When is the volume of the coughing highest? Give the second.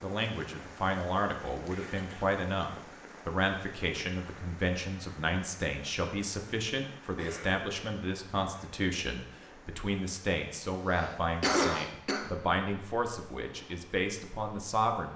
12 s.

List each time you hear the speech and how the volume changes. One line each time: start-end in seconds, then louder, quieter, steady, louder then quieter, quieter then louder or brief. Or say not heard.
0.0-15.1 steady.